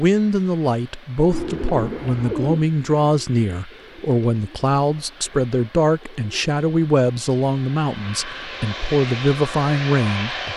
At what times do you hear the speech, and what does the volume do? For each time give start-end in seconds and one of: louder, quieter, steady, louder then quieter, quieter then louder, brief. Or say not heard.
0.0-10.5 steady.